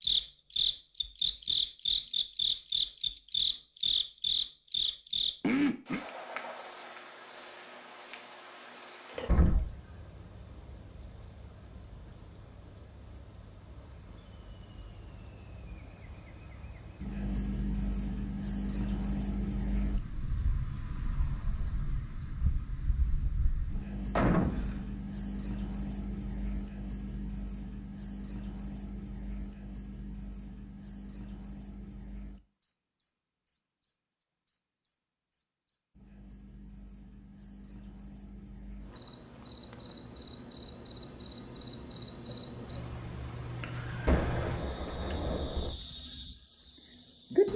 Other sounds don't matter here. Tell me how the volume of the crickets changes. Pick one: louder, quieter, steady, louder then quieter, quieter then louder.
quieter.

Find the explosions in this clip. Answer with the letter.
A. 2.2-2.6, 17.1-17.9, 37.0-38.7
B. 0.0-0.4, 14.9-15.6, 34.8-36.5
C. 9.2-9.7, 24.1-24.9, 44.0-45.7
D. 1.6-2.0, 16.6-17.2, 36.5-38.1
C.